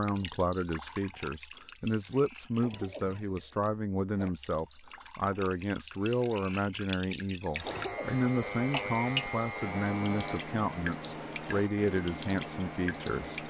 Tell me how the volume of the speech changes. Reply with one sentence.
The loudness of the speech stays about the same.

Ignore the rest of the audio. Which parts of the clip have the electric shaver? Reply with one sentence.
You can hear the electric shaver from 7.5 to 13.4 s.